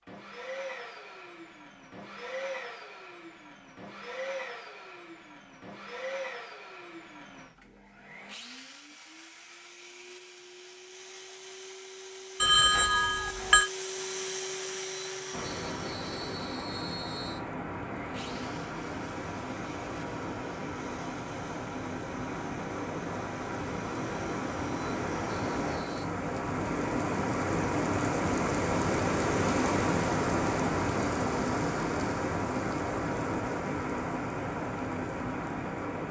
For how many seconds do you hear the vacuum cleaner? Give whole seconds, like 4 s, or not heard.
26 s.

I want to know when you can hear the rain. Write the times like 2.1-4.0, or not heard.
15.3-36.0.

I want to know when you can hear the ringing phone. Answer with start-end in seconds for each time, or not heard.
12.4-13.7.